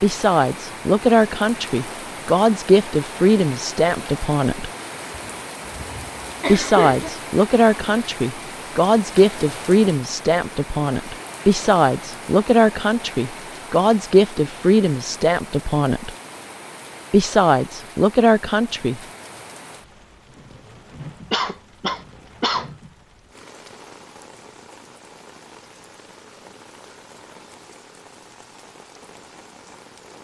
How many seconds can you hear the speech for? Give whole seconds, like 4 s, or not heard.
16 s.